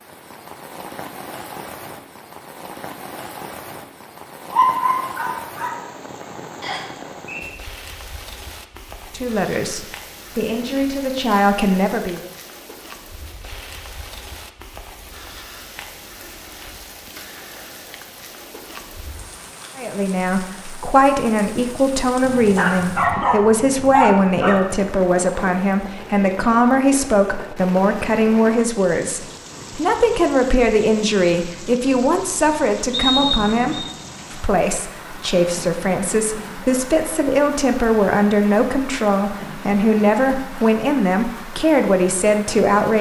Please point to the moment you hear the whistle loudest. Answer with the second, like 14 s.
33 s.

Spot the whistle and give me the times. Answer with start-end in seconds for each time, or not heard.
6.6-7.5, 32.9-33.9.